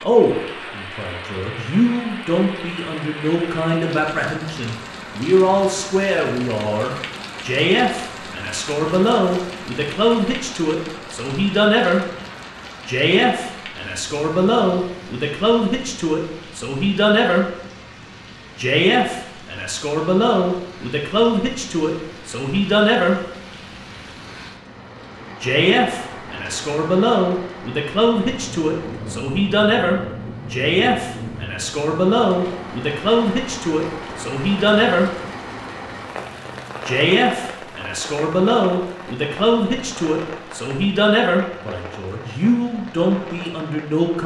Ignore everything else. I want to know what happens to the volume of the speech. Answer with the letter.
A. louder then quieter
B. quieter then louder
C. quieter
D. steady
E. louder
D.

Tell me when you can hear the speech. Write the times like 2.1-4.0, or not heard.
0.0-12.1, 12.8-17.4, 18.6-23.2, 25.4-35.1, 36.9-44.2.